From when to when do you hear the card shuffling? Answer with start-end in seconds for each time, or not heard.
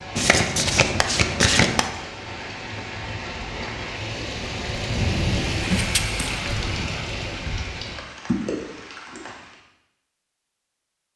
0.1-1.9, 5.7-6.2.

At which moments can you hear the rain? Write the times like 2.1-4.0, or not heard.
0.0-9.6.